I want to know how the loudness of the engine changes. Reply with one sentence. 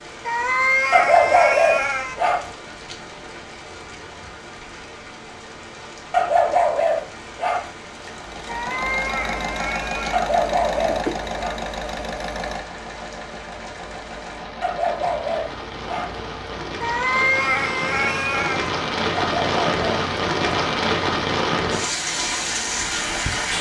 The volume of the engine goes down.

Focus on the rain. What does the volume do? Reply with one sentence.
The loudness of the rain goes up.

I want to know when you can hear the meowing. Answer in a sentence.
You can hear the meowing from 0.2 to 2.1 s, from 8.4 to 10.2 s and from 16.8 to 18.7 s.